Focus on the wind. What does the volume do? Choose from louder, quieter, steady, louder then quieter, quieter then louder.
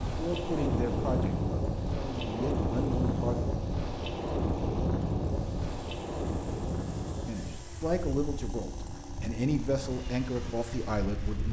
quieter.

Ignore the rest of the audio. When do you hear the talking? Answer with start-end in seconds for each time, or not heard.
0.0-3.4, 7.2-11.4.